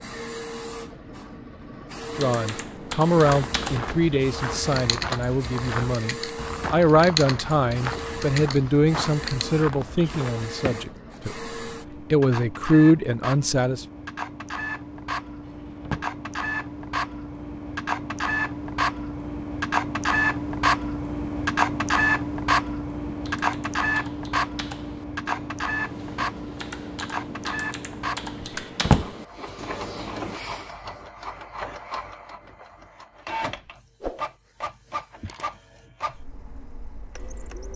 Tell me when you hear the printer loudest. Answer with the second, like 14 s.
22 s.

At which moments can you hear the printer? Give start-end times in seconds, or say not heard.
0.0-37.7.